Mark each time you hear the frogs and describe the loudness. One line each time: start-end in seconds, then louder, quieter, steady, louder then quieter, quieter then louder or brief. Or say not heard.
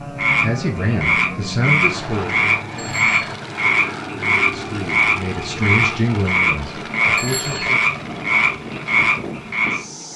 0.0-10.1 steady.